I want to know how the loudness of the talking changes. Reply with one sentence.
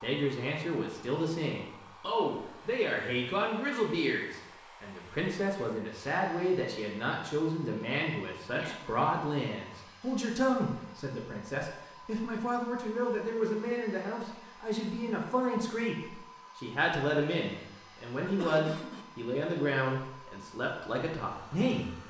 The loudness of the talking stays about the same.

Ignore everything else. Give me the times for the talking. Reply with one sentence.
You can hear the talking from 0.0 to 21.9 s.